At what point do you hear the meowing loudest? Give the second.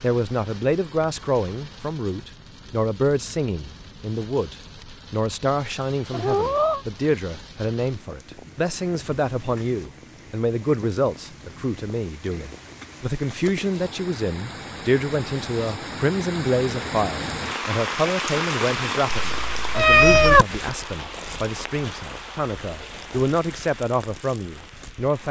20 s.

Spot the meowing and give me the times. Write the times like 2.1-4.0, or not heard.
6.1-6.8, 19.2-20.4.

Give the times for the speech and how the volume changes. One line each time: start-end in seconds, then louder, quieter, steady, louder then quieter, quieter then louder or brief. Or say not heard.
0.0-25.2 steady.